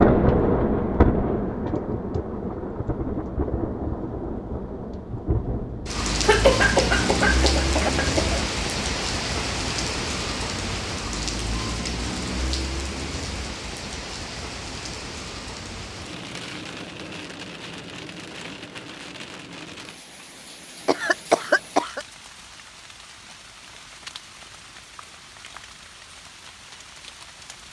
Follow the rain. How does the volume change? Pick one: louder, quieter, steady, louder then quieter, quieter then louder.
quieter.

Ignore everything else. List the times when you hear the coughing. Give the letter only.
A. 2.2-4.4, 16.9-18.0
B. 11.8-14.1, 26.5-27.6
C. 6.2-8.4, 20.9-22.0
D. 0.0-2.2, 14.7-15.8
C.